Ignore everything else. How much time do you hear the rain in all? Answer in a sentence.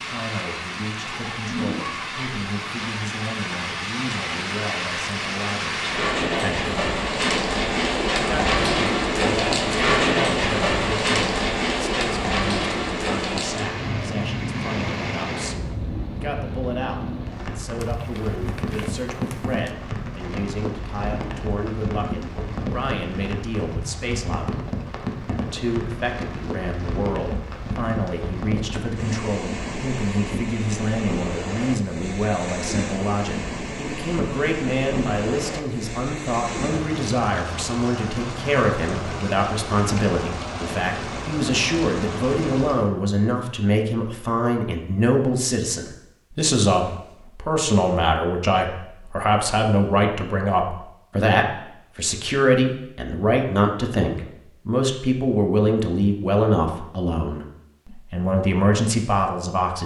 You can hear the rain for 43 seconds altogether.